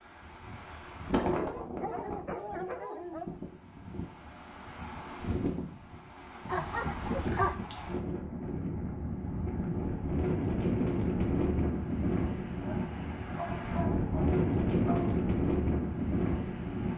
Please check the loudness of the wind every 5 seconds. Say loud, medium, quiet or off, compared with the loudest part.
medium, medium, loud, loud.